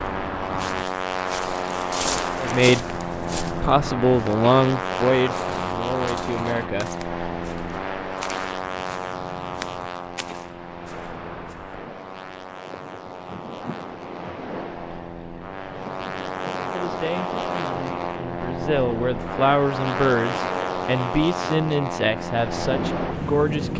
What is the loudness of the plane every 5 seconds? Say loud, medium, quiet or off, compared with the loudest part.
loud, loud, medium, loud, loud.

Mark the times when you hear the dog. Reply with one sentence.
The dog can't be heard in this clip.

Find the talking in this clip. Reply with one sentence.
You can hear the talking from 2.4 to 6.9 s and from 16.8 to 23.7 s.